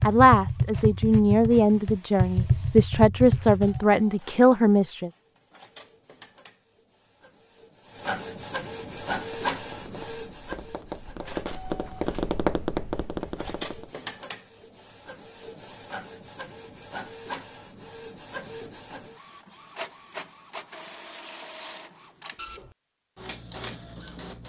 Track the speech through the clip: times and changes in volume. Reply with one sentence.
You can hear the speech from 0.1 to 5.1 s, at a steady volume.